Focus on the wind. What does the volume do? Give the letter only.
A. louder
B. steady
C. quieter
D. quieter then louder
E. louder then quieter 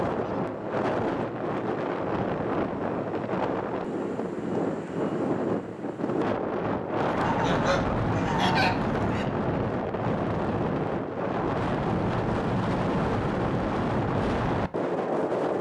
B.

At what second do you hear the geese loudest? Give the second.
9 s.